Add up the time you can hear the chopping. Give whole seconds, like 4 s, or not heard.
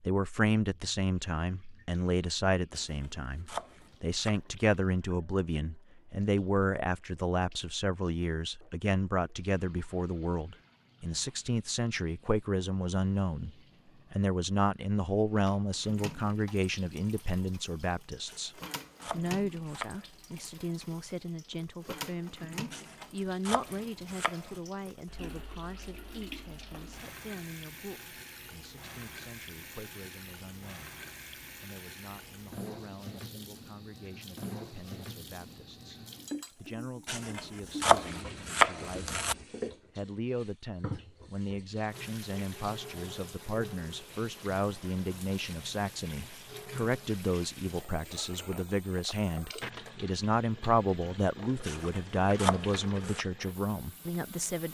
9 s.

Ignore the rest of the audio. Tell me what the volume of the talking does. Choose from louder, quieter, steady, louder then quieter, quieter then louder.
quieter then louder.